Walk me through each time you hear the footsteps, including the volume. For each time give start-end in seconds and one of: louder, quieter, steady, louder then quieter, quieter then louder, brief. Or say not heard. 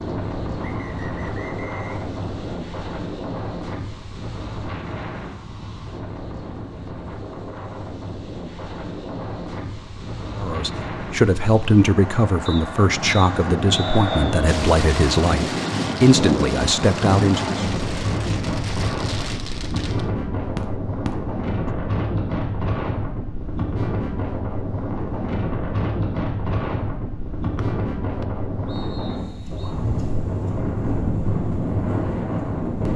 not heard.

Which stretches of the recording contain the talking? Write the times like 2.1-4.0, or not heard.
10.3-17.6.